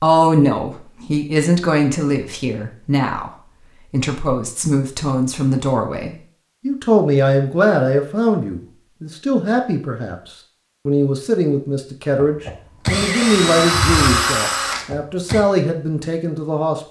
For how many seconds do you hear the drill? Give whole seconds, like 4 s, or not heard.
3 s.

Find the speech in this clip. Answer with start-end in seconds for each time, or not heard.
0.0-10.2, 10.8-16.8.